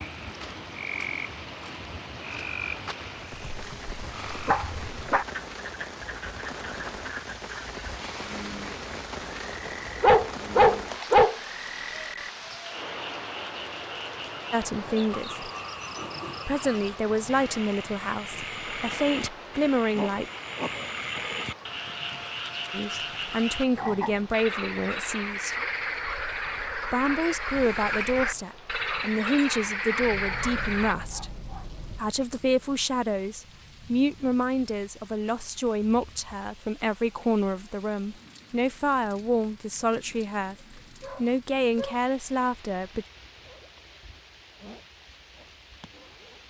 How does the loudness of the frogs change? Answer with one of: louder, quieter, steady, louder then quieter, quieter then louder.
louder.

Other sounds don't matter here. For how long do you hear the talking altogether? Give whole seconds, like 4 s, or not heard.
23 s.